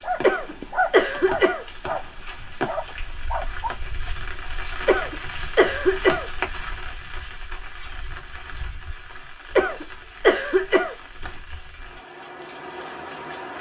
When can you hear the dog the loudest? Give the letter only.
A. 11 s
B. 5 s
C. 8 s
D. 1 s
D.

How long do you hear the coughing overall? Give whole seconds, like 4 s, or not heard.
4 s.